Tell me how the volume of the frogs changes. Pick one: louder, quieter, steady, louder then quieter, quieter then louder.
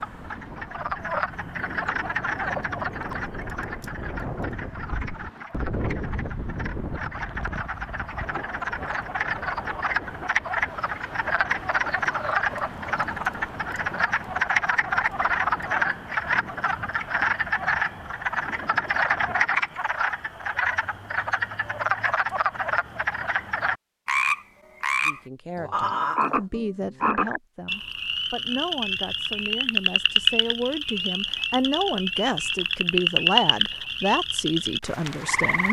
louder.